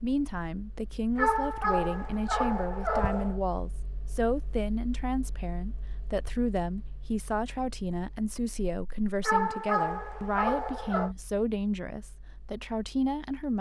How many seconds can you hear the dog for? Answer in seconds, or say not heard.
4 s.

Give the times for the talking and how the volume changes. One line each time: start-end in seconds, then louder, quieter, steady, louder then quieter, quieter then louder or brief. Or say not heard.
0.0-13.5 steady.